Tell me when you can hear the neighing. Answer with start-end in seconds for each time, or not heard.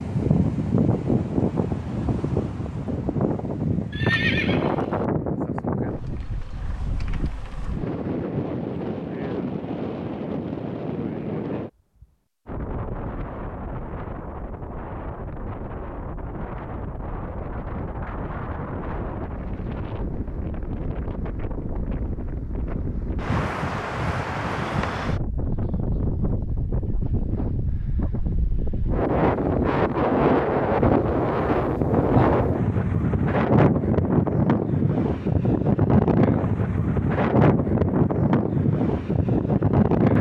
3.9-5.0.